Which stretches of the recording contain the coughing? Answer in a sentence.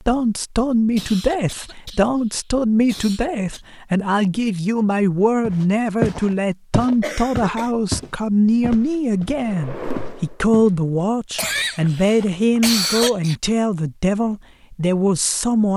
You can hear the coughing from 0.9 to 3.6 s, from 7.0 to 7.7 s and from 11.3 to 13.3 s.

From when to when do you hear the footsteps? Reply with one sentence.
The footsteps can be heard from 5.4 to 10.8 s and from 11.4 to 12.8 s.